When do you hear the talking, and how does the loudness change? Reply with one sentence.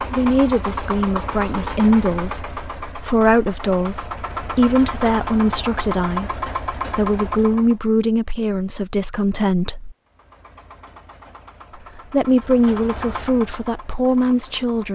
You can hear the talking from 0.0 to 9.9 s, at a steady volume; and briefly from 11.9 to 14.9 s.